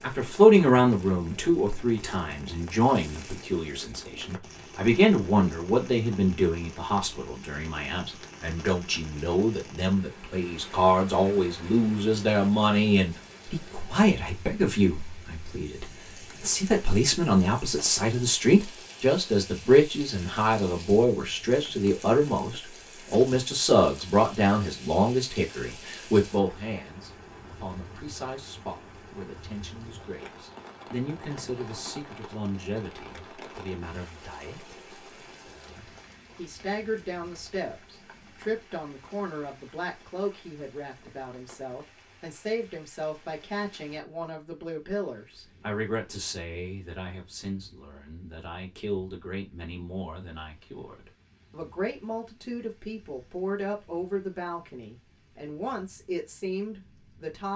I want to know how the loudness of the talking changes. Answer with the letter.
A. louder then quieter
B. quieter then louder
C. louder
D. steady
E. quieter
E.